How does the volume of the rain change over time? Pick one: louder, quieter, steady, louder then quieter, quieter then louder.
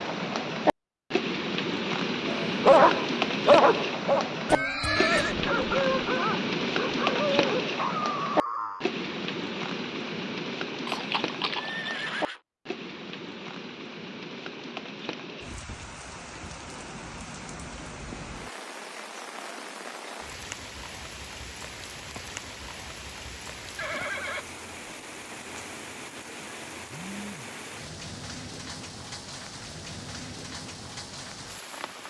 quieter.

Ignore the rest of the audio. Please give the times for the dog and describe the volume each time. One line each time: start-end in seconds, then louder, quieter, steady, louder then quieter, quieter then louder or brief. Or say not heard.
2.2-8.9 quieter.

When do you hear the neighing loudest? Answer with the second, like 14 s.
5 s.